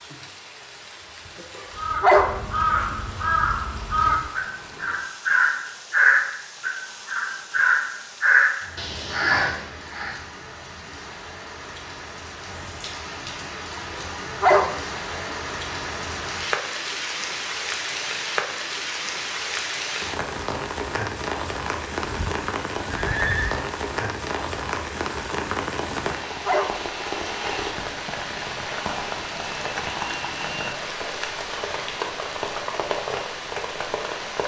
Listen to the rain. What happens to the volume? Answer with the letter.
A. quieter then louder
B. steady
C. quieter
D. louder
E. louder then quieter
D.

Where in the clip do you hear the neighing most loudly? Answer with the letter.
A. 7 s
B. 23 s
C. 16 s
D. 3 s
B.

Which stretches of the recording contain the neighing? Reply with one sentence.
The neighing can be heard from 22.0 to 23.7 s.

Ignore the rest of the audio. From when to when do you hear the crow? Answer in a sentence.
The crow can be heard from 1.8 to 10.2 s.